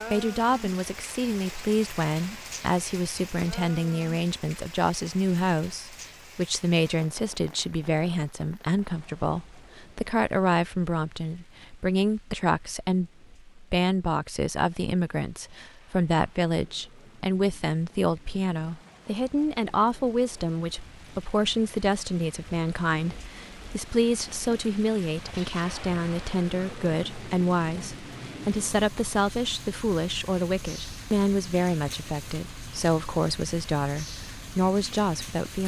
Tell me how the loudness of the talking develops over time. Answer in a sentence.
The loudness of the talking stays about the same.